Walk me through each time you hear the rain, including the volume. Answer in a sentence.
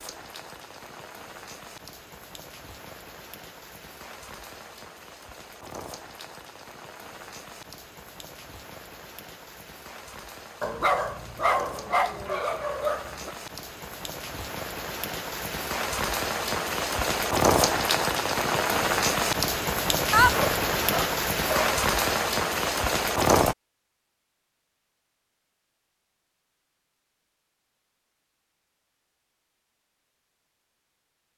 You can hear the rain from 0.0 to 23.6 s, getting louder.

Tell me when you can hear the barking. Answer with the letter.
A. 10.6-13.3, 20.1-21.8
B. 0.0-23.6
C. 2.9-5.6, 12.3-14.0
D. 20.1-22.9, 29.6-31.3
A.